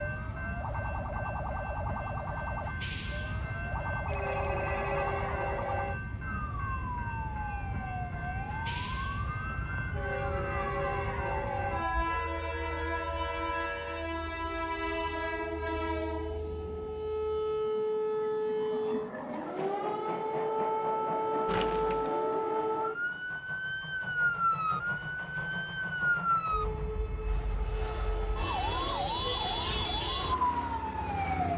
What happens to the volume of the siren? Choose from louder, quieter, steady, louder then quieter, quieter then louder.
louder.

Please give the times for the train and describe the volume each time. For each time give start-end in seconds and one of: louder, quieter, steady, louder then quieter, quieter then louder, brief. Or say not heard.
0.0-31.5 quieter.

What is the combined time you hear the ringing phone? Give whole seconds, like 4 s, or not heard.
2 s.